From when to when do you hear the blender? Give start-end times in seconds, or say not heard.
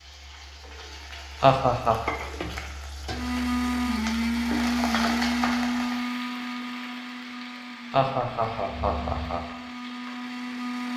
3.1-10.9.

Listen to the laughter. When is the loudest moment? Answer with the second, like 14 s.
2 s.